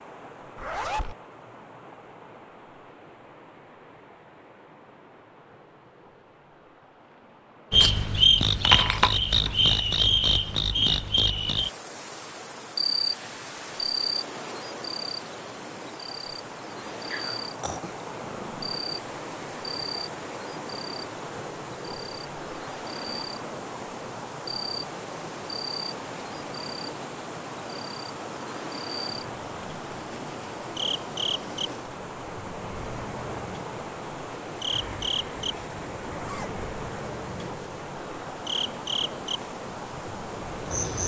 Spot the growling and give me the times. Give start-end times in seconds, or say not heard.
17.1-18.9.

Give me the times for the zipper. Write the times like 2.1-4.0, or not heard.
0.6-1.1, 34.7-36.6.